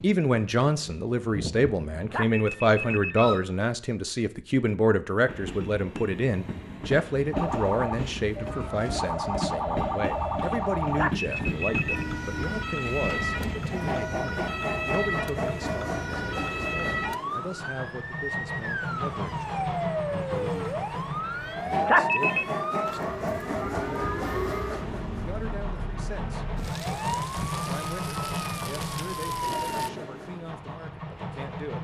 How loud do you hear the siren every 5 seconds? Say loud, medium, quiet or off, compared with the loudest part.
off, loud, loud, loud, loud, loud, off.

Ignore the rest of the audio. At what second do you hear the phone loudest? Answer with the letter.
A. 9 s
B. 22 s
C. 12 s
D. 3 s
B.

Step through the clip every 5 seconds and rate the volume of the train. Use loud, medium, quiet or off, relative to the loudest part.
loud, loud, loud, loud, loud, loud, medium.